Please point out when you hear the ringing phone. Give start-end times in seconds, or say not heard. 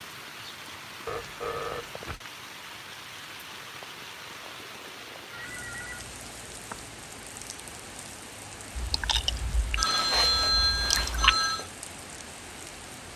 1.1-2.2, 5.3-6.8, 9.8-11.7.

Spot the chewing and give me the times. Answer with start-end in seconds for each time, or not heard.
8.8-11.3.